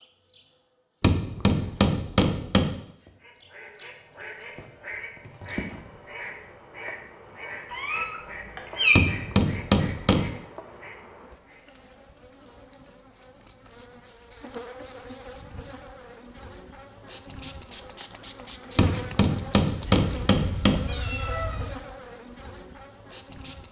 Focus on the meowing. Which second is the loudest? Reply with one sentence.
The loudest moment of the meowing is at 9 seconds.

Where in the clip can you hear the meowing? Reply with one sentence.
The meowing can be heard from 7.7 to 9.1 s and from 19.8 to 21.8 s.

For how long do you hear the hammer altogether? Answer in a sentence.
You can hear the hammer for 5 seconds altogether.